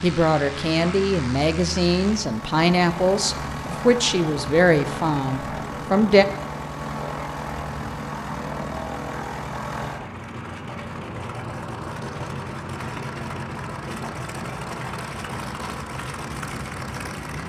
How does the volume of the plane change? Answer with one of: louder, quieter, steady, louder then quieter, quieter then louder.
steady.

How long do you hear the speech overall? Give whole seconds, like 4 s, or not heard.
6 s.